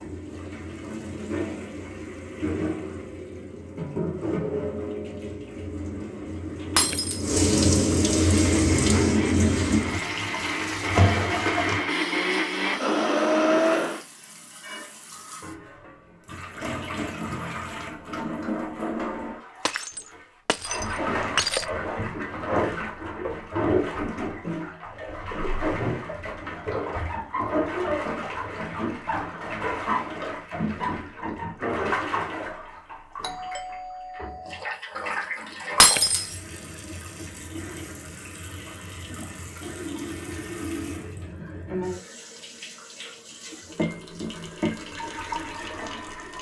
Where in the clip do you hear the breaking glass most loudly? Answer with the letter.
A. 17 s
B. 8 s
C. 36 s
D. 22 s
C.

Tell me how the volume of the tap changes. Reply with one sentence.
The loudness of the tap goes down.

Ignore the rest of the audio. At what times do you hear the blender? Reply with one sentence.
The blender can be heard from 8.2 to 14.0 s.